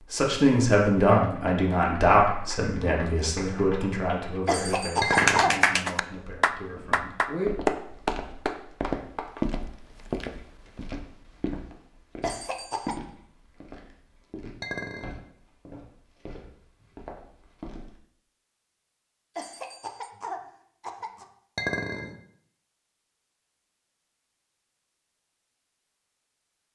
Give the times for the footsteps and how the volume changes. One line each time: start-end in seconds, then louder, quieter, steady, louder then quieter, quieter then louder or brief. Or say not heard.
6.1-18.0 louder then quieter.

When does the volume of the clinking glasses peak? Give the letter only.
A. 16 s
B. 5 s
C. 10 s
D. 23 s
B.